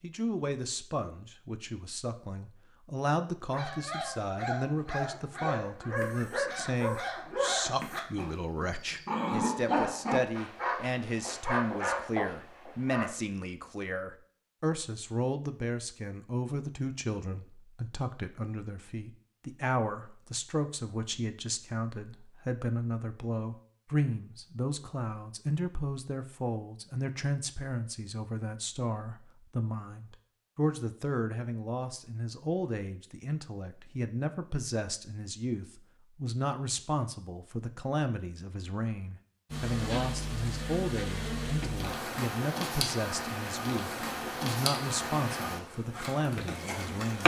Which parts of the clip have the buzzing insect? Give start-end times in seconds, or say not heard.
39.5-47.2.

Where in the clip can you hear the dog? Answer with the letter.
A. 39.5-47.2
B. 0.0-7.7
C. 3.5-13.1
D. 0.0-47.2
C.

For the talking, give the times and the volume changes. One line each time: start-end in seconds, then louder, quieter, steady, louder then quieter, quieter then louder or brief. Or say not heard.
0.0-47.2 steady.